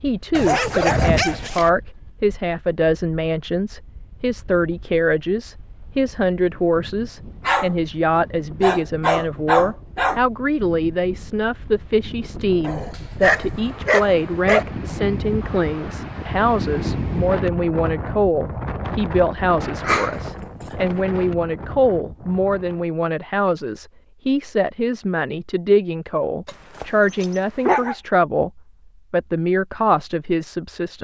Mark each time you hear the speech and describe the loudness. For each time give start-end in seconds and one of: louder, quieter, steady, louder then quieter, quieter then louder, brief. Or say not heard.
0.0-30.9 steady.